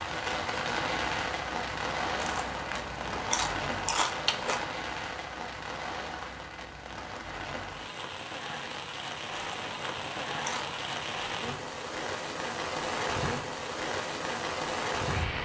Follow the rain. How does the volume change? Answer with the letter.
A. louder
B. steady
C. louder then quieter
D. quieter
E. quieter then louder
E.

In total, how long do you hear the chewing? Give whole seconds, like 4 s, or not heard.
4 s.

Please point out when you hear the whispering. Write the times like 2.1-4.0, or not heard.
not heard.